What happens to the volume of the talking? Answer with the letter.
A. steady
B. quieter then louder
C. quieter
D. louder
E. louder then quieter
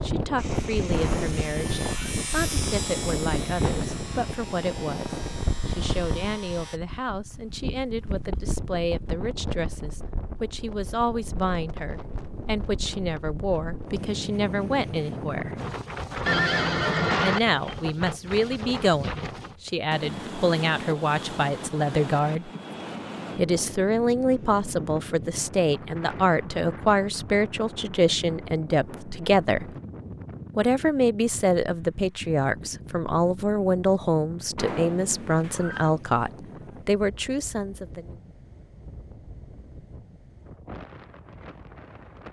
D.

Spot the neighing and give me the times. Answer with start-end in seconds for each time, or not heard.
0.9-2.1, 16.2-17.4, 34.5-35.9.